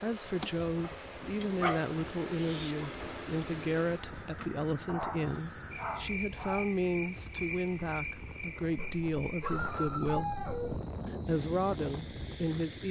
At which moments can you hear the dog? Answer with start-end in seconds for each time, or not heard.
0.8-2.8, 4.8-6.8, 8.8-10.8.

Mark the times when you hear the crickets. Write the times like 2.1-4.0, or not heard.
0.0-12.8.